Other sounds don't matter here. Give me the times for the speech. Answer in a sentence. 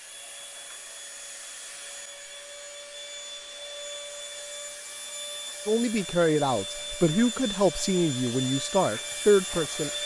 The speech can be heard from 5.7 to 9.9 s.